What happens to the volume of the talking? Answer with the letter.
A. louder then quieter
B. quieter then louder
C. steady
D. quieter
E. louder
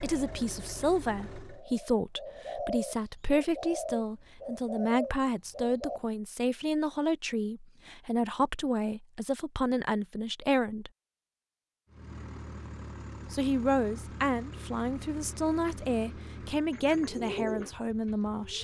C.